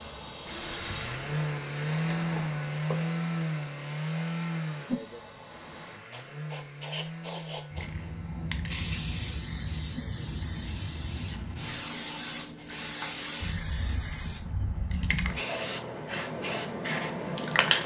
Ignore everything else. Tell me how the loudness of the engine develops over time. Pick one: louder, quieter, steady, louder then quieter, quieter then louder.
quieter.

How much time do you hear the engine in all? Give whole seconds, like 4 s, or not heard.
12 s.